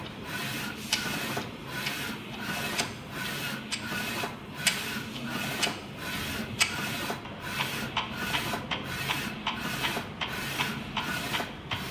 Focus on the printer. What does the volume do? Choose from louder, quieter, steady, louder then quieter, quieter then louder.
steady.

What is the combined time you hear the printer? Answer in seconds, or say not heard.
12 s.